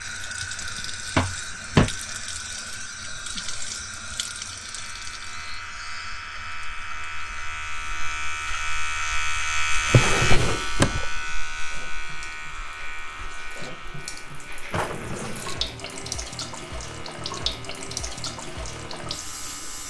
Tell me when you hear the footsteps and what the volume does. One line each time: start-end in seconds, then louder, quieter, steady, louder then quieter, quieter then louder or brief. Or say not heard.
not heard.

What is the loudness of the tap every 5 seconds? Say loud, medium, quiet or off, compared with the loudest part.
loud, medium, medium, loud.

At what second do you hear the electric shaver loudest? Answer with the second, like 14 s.
10 s.